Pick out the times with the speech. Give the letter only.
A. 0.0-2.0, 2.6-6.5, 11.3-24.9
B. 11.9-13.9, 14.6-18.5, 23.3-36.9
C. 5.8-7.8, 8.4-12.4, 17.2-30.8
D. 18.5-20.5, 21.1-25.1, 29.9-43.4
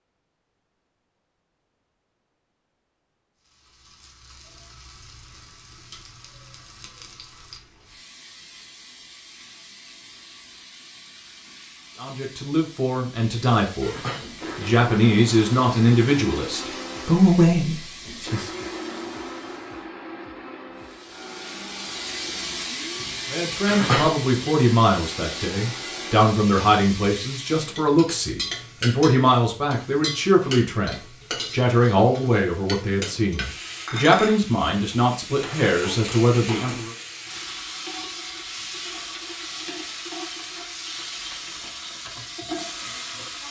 B.